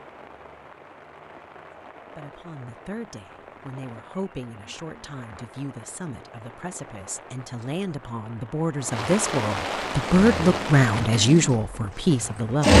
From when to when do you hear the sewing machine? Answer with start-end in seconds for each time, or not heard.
10.0-12.7.